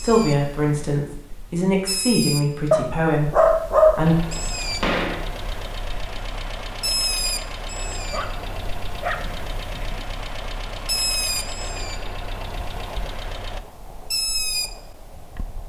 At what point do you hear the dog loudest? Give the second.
4 s.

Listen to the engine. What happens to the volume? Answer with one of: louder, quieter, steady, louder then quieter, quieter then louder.
steady.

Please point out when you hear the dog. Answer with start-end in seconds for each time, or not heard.
2.7-4.0, 8.1-10.0.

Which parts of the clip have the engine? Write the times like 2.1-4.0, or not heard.
4.0-13.6.